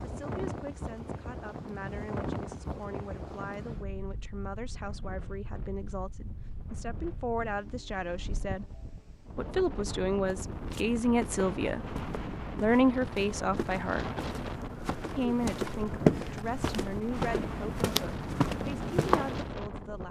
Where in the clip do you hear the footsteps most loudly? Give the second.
16 s.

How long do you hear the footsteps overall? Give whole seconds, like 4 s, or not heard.
9 s.